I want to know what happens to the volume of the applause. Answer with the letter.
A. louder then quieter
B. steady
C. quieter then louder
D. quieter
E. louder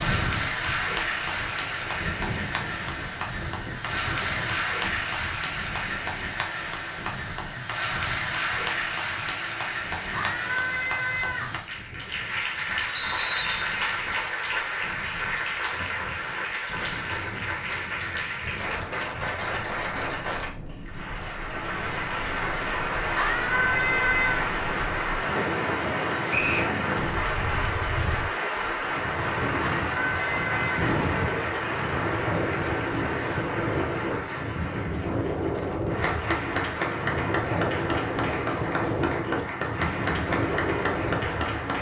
B.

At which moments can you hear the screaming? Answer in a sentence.
The screaming can be heard from 10.1 to 11.5 s, from 23.1 to 24.5 s and from 29.6 to 30.9 s.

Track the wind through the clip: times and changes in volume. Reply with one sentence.
You can hear the wind from 0.0 to 41.7 s, getting quieter then louder.